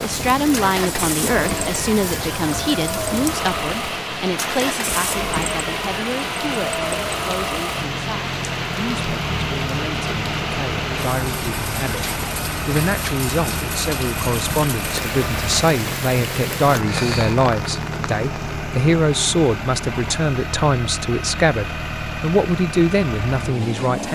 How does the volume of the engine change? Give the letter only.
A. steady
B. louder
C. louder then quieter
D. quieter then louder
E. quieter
A.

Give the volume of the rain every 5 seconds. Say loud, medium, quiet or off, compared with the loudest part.
loud, loud, loud, loud, off.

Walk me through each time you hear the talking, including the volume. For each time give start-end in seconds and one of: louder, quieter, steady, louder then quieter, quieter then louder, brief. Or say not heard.
0.0-24.1 quieter then louder.